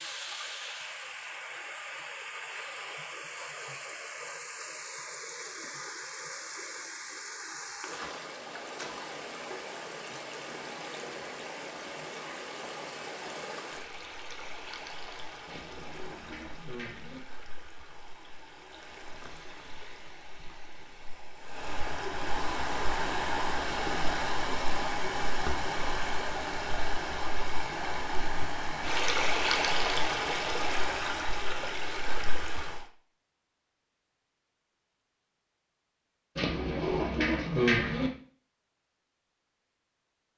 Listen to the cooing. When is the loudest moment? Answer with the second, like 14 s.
38 s.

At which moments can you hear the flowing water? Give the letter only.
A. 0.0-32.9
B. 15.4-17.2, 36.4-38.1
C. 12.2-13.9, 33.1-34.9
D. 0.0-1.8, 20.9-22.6
A.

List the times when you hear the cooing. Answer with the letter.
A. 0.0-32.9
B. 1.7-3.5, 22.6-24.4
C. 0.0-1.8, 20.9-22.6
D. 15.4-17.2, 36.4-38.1
D.